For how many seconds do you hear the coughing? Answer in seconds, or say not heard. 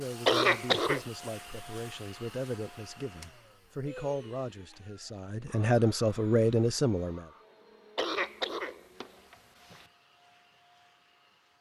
3 s.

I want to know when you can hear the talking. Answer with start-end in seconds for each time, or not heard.
0.0-7.2.